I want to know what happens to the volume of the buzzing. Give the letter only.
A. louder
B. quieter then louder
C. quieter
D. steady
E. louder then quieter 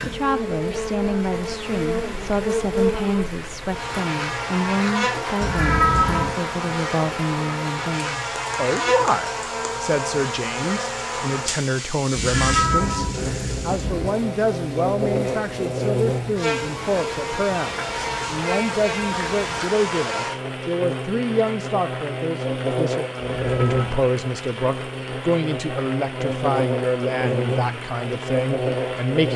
D.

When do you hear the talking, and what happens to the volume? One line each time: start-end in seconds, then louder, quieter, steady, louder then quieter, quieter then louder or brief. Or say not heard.
0.1-13.1 steady
13.7-29.3 steady.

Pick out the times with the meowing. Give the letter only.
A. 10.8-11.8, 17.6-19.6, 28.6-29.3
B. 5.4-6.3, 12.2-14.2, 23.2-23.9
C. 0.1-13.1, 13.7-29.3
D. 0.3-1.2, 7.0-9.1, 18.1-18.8
B.